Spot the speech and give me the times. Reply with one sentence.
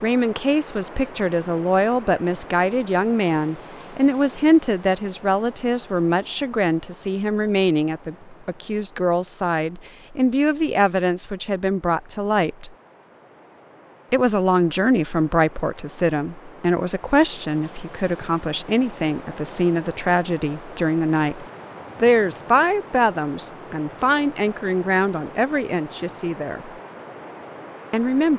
You can hear the speech from 0.0 to 12.7 s, from 14.1 to 26.7 s and from 27.9 to 28.3 s.